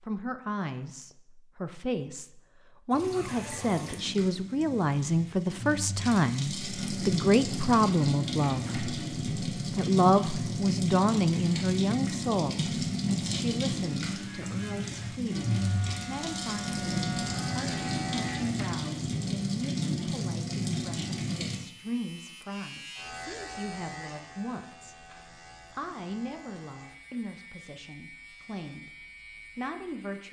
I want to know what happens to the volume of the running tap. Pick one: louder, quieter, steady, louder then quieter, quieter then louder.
louder.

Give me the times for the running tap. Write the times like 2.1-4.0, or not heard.
2.9-21.6.